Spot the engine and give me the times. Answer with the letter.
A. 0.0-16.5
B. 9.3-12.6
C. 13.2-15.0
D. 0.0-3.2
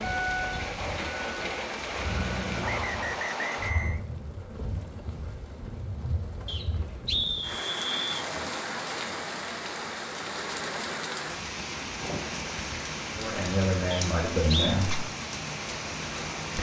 D.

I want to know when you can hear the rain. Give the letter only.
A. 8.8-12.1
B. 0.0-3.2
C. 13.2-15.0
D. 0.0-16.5
D.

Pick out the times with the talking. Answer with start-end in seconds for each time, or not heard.
13.2-15.0.